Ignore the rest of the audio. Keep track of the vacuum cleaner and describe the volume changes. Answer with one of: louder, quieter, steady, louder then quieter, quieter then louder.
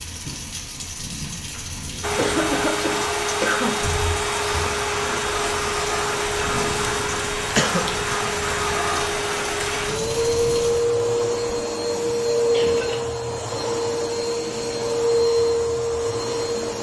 steady.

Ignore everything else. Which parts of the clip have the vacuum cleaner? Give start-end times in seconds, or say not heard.
2.0-16.7.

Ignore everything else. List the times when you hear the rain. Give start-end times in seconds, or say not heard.
0.0-10.9.